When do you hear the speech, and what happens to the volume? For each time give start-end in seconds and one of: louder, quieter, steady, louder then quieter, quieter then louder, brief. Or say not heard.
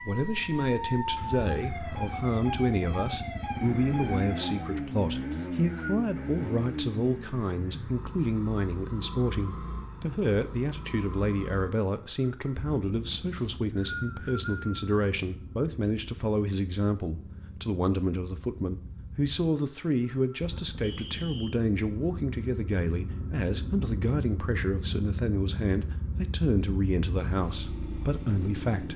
0.1-28.9 steady.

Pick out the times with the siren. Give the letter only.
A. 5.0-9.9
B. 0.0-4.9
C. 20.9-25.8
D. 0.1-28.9
B.